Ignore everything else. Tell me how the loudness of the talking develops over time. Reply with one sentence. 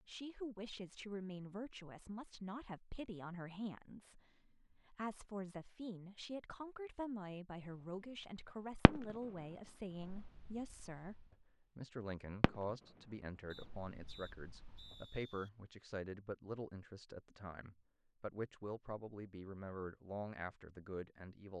The loudness of the talking stays about the same.